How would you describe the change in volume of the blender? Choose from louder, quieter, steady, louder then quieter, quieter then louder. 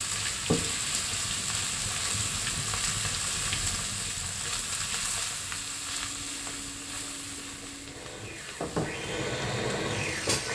louder.